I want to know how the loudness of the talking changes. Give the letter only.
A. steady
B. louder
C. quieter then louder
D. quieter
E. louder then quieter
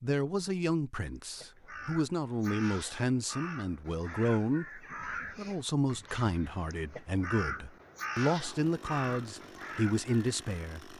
A.